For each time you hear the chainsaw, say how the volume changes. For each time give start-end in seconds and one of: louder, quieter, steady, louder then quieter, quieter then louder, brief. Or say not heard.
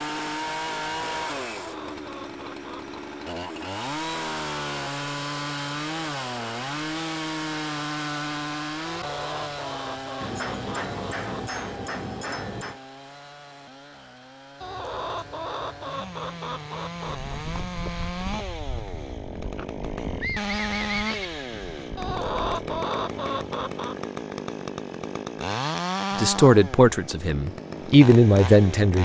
0.0-28.9 quieter then louder.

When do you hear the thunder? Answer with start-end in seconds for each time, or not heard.
not heard.